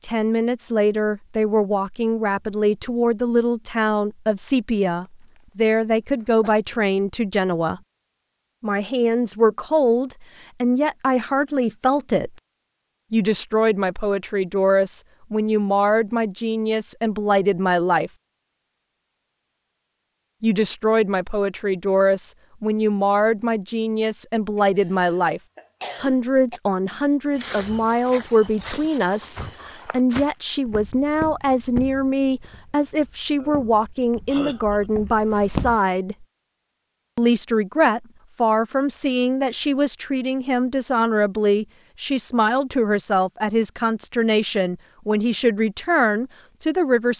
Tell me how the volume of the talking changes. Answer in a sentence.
The loudness of the talking stays about the same.